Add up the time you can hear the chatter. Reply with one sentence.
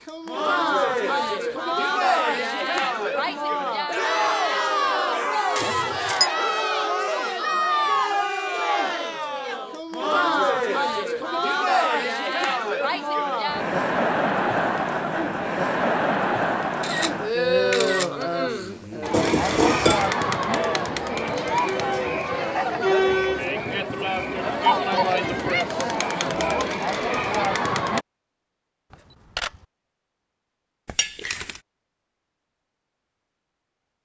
The chatter can be heard for 28 seconds in total.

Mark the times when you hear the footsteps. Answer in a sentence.
The footsteps can't be heard in this clip.